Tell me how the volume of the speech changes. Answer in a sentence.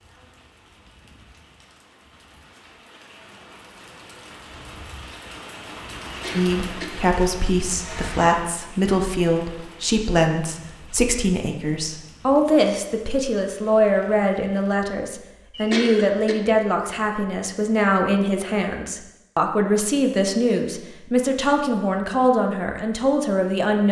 The volume of the speech stays about the same.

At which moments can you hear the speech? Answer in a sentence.
The speech can be heard from 6.3 to 23.8 s.